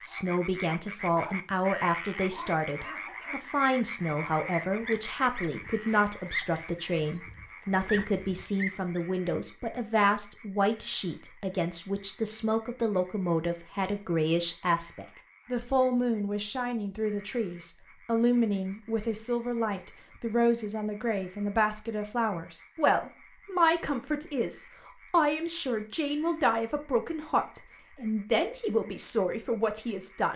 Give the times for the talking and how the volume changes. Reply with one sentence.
The talking can be heard from 0.0 to 30.3 s, at a steady volume.